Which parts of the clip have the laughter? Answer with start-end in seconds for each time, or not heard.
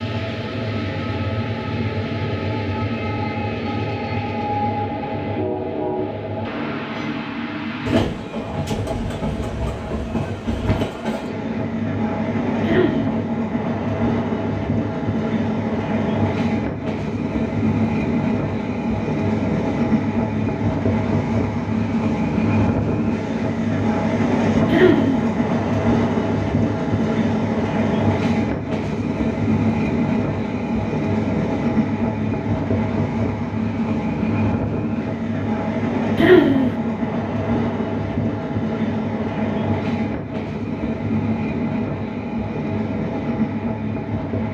12.7-13.2, 24.7-25.2, 36.1-36.8.